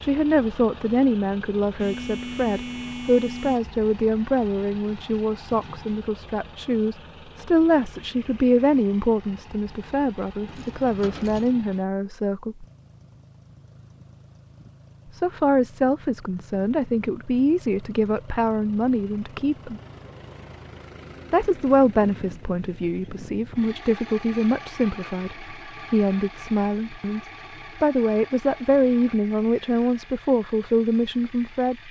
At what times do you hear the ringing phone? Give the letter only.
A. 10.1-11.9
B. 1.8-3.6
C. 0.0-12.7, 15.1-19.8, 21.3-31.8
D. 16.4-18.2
B.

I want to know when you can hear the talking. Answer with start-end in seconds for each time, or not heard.
0.0-12.7, 15.1-19.8, 21.3-31.8.